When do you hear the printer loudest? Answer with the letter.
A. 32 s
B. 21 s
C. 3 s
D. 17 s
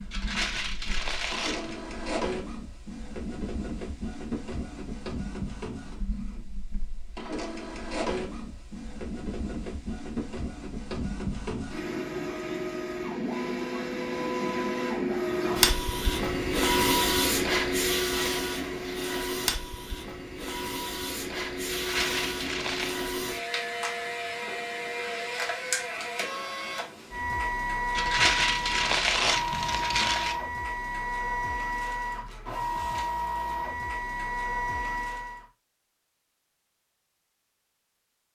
D.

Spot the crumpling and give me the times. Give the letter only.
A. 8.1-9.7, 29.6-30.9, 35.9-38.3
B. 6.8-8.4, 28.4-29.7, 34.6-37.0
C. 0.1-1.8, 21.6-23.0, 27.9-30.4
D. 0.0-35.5
C.